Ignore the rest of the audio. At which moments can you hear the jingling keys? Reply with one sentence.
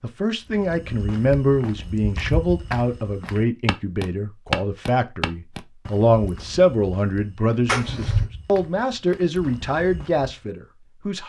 The jingling keys can't be heard in this clip.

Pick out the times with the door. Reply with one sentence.
The door can be heard from 7.7 to 8.3 s.